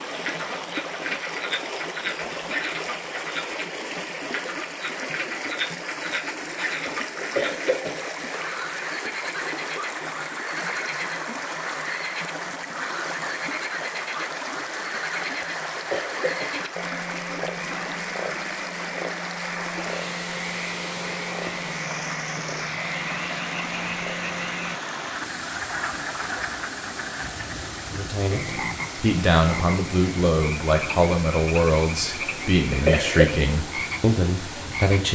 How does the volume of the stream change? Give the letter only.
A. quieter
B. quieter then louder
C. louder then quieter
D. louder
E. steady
E.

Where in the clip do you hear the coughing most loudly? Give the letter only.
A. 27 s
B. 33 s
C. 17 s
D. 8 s
B.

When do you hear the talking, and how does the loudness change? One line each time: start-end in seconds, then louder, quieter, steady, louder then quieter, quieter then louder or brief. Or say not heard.
27.9-35.1 steady.